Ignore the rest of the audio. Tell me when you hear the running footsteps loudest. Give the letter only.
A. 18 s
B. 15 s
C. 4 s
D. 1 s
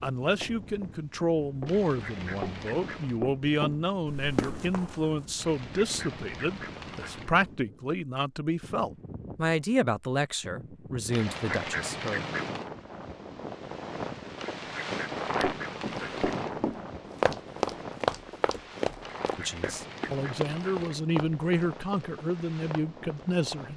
A.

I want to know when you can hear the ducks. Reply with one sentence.
The ducks can be heard from 1.6 to 3.2 s, from 5.3 to 7.3 s, from 11.1 to 12.7 s, from 14.3 to 16.6 s and from 19.0 to 21.1 s.